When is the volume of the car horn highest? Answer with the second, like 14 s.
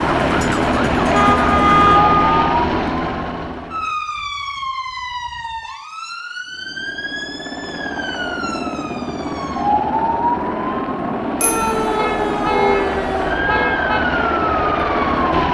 2 s.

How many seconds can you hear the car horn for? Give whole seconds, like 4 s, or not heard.
3 s.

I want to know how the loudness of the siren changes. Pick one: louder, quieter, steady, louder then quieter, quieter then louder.
quieter then louder.